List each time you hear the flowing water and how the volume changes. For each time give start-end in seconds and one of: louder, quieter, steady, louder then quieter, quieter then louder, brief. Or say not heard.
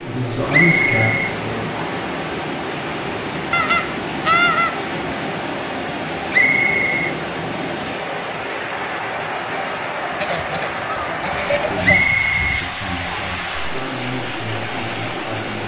0.0-15.6 steady.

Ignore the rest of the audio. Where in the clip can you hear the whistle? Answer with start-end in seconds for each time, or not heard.
0.5-2.1, 6.3-7.2, 11.8-13.3.